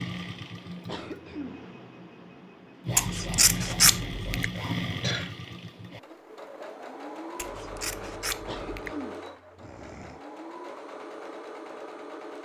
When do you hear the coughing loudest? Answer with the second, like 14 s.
5 s.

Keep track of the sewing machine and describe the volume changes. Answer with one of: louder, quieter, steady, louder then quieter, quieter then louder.
louder then quieter.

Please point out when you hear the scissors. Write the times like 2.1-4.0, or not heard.
3.0-4.5, 7.3-8.9.